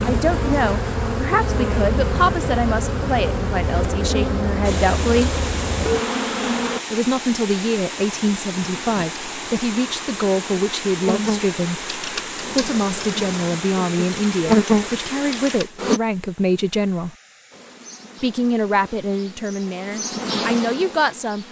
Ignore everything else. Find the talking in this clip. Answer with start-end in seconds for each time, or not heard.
0.0-5.3, 6.9-17.1, 18.2-21.4.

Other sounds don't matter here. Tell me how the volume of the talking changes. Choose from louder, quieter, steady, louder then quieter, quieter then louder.
steady.